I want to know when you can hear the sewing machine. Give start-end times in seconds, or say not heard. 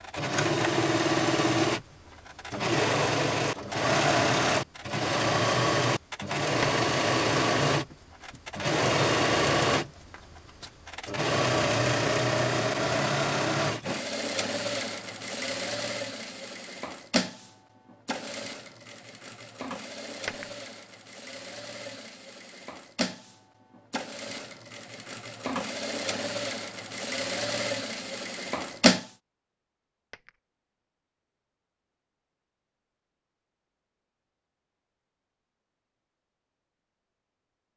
0.0-29.1.